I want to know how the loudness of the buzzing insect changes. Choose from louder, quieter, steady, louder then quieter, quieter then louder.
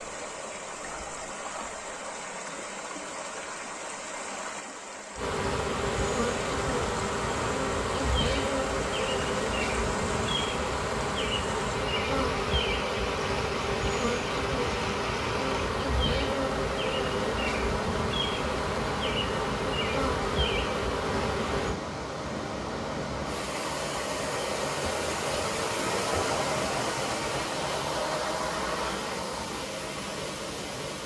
steady.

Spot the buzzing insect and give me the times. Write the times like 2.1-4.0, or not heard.
5.2-21.8.